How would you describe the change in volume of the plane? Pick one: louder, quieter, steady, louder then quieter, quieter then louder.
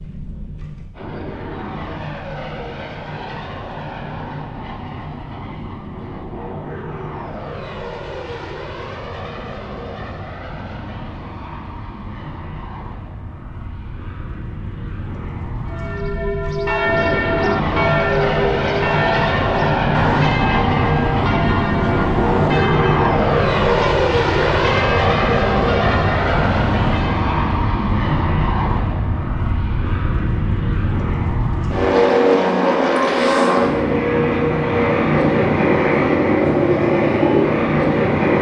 louder.